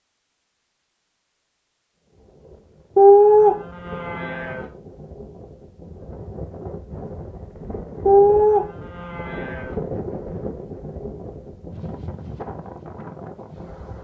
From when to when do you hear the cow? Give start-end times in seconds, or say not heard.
3.0-4.7, 8.1-9.8.